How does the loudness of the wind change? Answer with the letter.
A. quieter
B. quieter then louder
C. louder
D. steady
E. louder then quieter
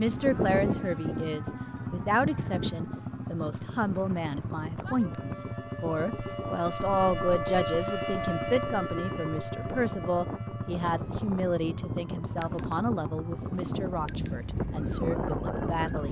B.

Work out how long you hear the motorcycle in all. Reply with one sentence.
You can hear the motorcycle for 16 seconds altogether.